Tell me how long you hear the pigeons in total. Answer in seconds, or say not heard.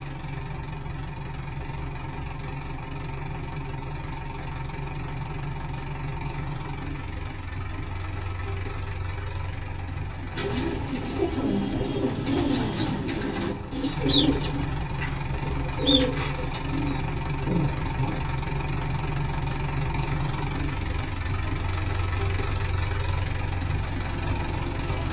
8 s.